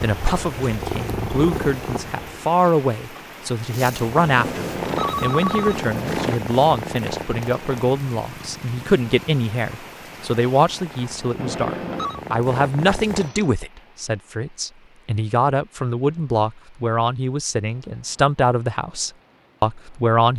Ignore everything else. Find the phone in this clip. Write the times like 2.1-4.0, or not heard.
4.3-6.4, 11.3-12.2.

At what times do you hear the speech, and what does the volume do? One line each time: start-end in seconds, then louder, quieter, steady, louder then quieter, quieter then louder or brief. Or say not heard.
0.0-20.3 steady.